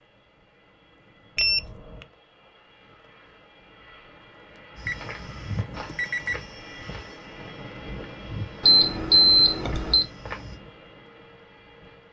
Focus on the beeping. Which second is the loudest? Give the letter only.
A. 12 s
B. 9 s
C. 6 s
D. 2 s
B.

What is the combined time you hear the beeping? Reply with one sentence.
The beeping can be heard for 4 seconds in total.